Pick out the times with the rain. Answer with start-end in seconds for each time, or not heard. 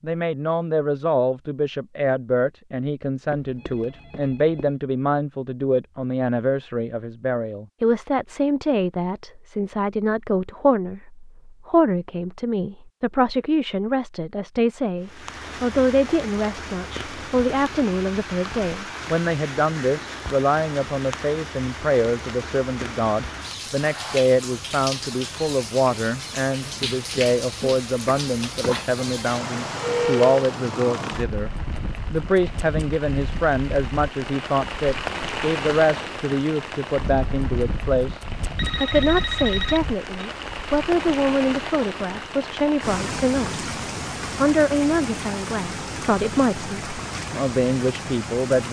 15.0-48.6.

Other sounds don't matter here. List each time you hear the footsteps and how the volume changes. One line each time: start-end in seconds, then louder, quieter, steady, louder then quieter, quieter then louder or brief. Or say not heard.
not heard.